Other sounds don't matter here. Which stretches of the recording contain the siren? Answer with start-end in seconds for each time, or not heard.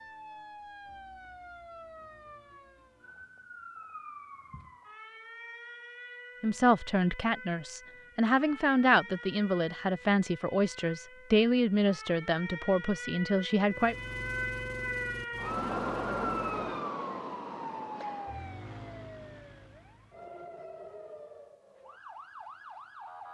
0.0-23.2.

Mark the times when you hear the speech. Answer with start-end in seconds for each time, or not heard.
6.4-13.9.